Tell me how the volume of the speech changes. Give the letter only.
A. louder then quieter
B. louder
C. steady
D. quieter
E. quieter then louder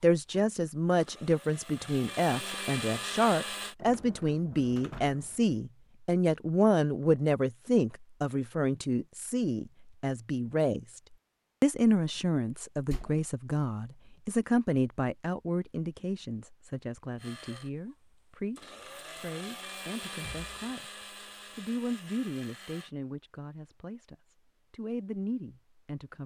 D.